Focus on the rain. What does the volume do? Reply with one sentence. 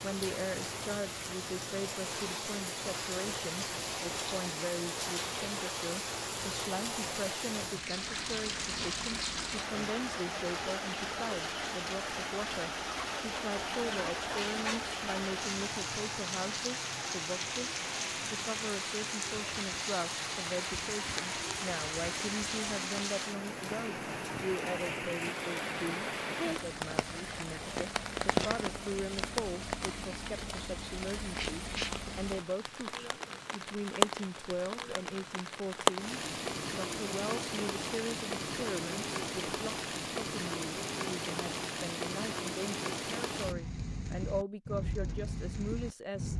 The loudness of the rain stays about the same.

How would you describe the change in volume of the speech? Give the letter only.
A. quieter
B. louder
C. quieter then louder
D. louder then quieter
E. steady
E.